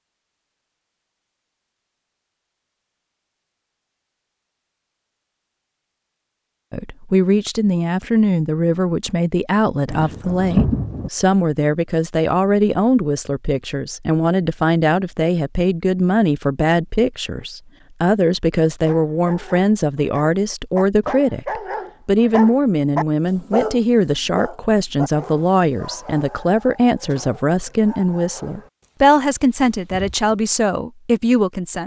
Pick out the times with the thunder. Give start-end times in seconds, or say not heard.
9.8-11.1.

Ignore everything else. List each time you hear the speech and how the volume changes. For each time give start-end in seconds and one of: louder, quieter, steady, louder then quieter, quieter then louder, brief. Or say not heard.
6.7-31.8 steady.